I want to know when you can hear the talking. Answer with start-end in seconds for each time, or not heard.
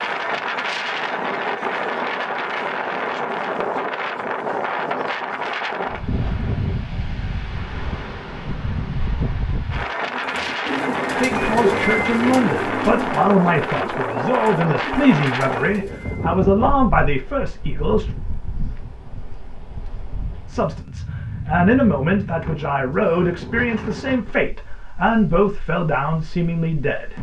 11.2-18.1, 20.4-27.1.